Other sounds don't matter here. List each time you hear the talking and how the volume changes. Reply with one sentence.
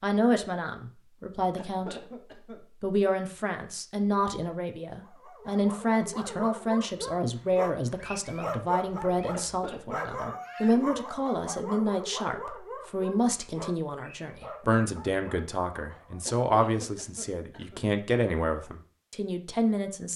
The talking can be heard from 0.0 to 20.1 s, at a steady volume.